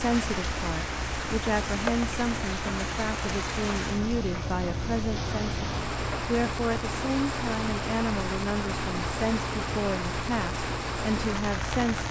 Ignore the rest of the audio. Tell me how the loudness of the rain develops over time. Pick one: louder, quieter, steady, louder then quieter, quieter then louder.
steady.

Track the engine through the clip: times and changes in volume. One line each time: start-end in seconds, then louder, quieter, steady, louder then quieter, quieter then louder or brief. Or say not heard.
0.0-12.0 steady.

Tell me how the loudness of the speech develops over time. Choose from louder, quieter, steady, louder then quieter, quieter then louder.
steady.